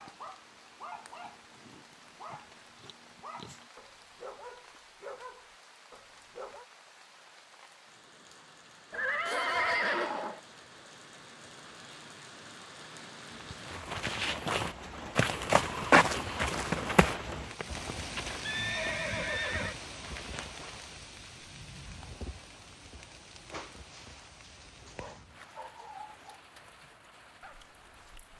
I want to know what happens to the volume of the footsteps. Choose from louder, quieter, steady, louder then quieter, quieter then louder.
louder then quieter.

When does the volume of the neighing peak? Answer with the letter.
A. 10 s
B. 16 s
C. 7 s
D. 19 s
A.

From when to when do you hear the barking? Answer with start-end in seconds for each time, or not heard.
0.0-6.7, 23.4-28.3.